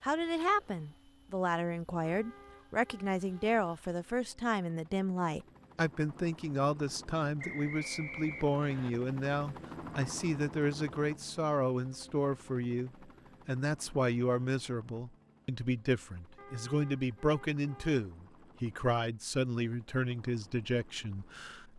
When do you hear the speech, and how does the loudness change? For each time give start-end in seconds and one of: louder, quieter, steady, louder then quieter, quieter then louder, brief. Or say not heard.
0.0-21.7 steady.